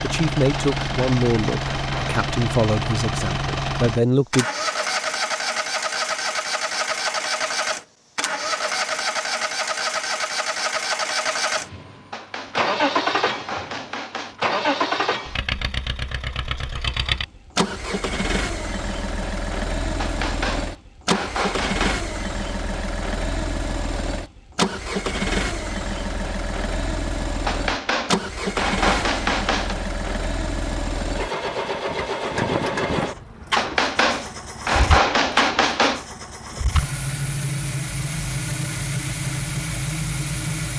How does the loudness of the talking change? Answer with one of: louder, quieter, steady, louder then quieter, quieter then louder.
steady.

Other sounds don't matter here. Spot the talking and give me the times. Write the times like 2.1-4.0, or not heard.
0.0-4.5.